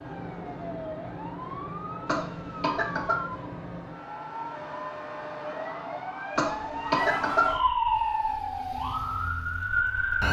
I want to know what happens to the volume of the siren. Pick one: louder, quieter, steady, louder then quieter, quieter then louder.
louder.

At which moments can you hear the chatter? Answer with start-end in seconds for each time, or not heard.
not heard.